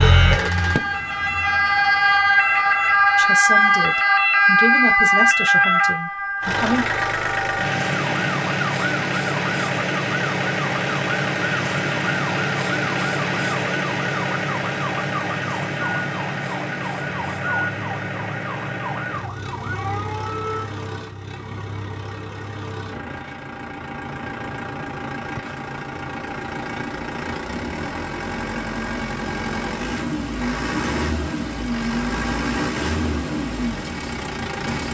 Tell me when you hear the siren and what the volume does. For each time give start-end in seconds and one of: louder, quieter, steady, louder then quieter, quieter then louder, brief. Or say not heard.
0.0-20.6 quieter.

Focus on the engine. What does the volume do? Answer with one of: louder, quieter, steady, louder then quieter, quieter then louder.
quieter then louder.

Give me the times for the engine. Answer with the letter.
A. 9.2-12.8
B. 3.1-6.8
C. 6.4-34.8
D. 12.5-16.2
C.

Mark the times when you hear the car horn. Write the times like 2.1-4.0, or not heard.
not heard.